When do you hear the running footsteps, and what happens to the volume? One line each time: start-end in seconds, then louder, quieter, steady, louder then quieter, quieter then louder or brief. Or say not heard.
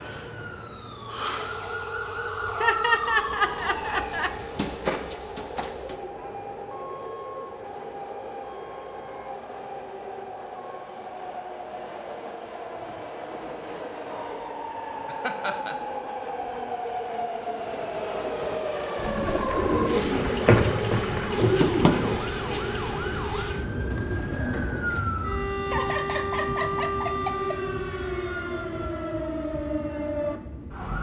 not heard.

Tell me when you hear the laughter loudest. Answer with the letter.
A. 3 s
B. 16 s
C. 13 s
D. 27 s
A.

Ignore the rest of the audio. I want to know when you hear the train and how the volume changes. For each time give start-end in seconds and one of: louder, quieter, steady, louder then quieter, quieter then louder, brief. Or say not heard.
0.0-30.9 louder then quieter.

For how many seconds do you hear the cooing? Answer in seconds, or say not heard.
6 s.